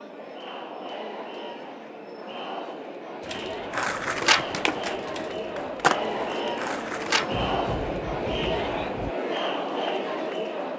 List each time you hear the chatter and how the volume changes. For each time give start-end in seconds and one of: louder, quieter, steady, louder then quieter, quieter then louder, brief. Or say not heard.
0.0-10.7 louder.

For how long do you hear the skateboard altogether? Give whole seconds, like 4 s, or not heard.
4 s.